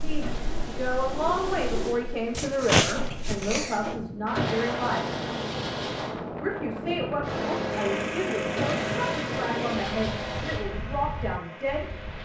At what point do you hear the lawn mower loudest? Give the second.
8 s.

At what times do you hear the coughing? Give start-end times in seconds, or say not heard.
2.4-4.0.